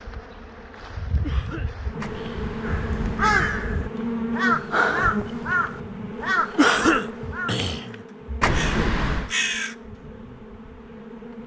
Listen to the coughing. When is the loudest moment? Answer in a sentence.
The volume of the coughing peaks at 7 seconds.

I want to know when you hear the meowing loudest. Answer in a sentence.
The loudest moment of the meowing is at 9 seconds.